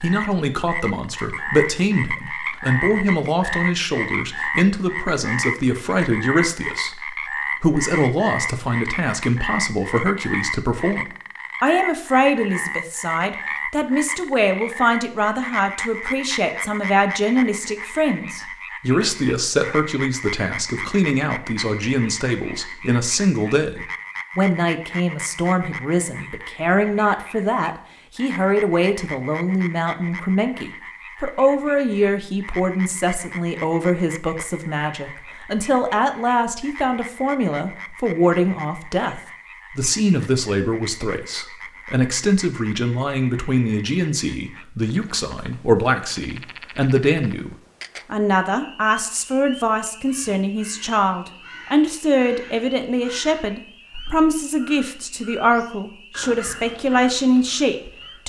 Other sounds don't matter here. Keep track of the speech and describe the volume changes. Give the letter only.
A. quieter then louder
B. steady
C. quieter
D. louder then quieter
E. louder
B.